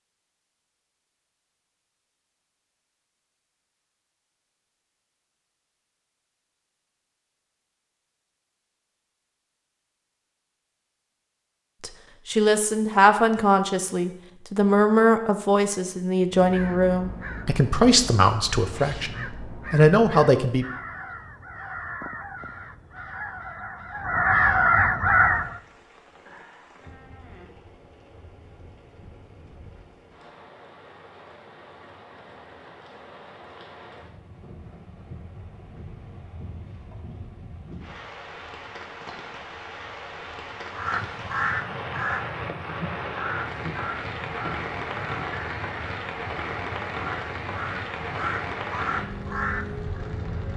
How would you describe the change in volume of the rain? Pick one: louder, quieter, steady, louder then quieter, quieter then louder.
louder.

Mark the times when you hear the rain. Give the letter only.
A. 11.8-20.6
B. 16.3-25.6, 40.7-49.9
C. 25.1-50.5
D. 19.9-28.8
C.